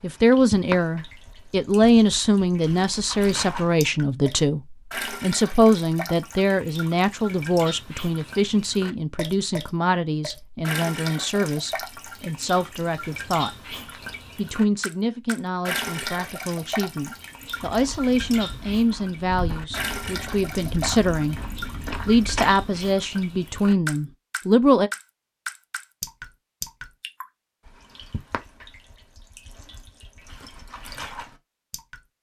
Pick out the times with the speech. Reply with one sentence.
The speech can be heard from 0.0 to 13.5 s, from 14.3 to 21.4 s and from 22.1 to 24.9 s.